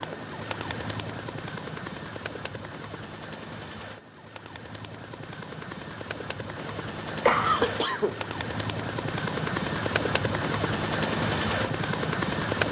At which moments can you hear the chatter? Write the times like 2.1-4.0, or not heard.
not heard.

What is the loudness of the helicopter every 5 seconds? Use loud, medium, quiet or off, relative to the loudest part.
medium, medium, loud.